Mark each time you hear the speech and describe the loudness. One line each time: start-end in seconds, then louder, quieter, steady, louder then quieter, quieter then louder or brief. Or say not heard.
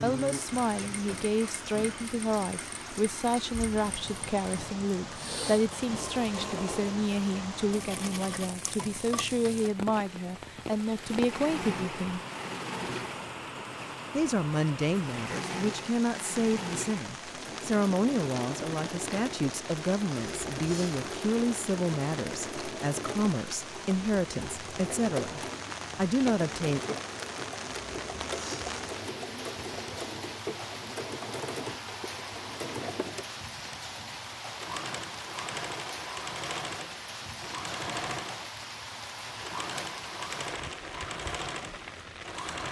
0.0-12.2 steady
14.1-26.8 steady.